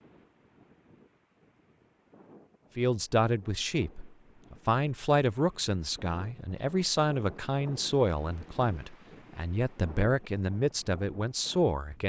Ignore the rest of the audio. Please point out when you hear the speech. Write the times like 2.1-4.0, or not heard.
2.8-12.0.